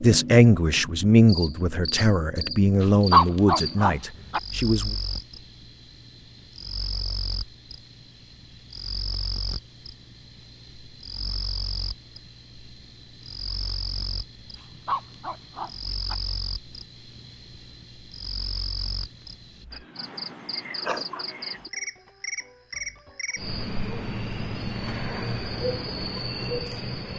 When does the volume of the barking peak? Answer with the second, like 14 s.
3 s.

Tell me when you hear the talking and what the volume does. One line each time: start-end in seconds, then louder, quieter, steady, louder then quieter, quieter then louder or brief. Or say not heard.
0.0-5.0 quieter.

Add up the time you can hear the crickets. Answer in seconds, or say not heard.
27 s.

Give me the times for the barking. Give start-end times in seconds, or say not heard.
2.8-4.4, 14.6-16.1.